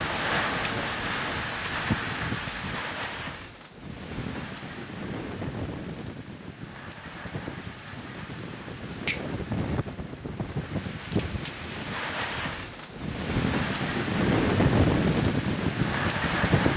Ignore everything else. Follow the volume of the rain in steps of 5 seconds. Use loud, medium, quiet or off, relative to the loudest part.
medium, medium, loud, loud.